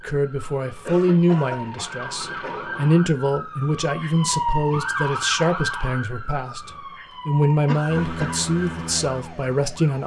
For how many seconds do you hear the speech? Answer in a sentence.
You can hear the speech for 10 seconds altogether.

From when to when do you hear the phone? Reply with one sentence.
The phone can't be heard in this clip.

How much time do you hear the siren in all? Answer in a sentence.
The siren can be heard for 10 seconds in total.